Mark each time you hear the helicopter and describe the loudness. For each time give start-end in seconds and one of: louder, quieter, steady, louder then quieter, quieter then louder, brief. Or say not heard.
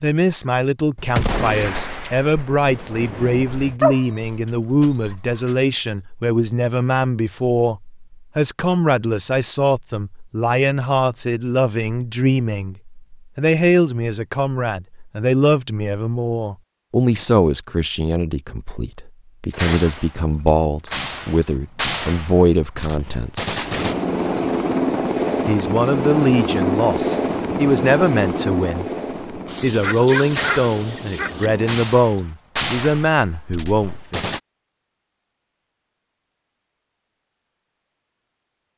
23.6-31.8 quieter.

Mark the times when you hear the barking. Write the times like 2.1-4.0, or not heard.
3.8-5.5, 29.4-31.5.